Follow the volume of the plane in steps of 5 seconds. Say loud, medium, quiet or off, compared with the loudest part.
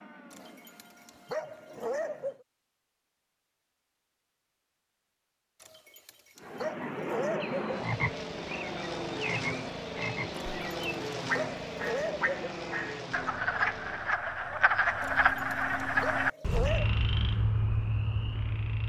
quiet, loud, loud, off.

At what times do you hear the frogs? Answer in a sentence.
The frogs can be heard from 6.8 to 18.8 s.